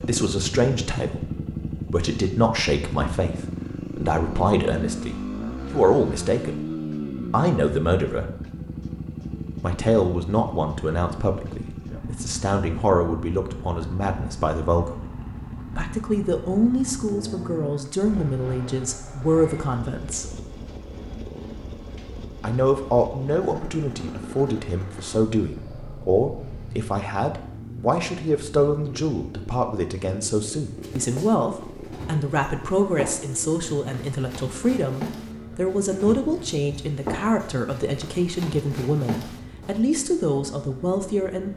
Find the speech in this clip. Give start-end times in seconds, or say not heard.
0.1-6.5, 7.3-8.3, 9.6-14.9, 15.8-20.3, 22.4-41.5.